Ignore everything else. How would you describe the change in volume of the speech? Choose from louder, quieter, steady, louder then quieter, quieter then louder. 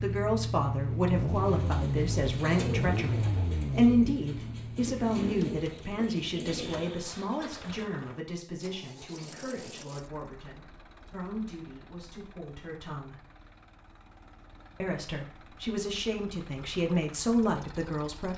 quieter then louder.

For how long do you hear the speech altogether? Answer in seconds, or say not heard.
17 s.